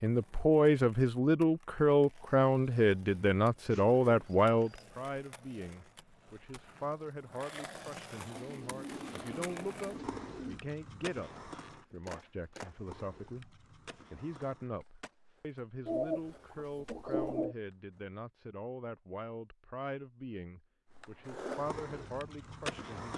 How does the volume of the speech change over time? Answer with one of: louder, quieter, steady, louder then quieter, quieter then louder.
quieter.